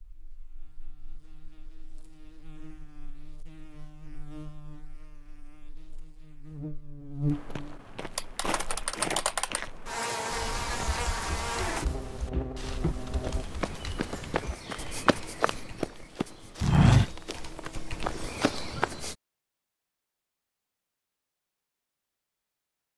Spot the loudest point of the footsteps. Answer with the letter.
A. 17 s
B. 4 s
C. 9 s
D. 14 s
A.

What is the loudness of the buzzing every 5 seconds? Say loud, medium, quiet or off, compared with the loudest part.
quiet, loud, loud, off, off.